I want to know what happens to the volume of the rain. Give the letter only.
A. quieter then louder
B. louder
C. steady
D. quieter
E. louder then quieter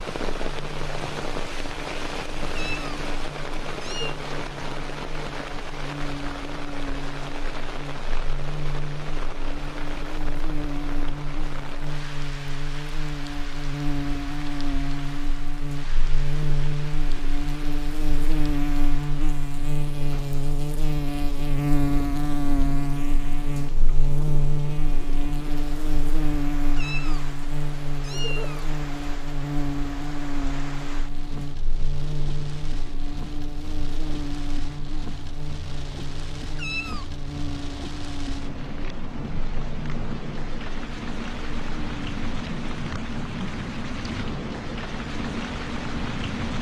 A.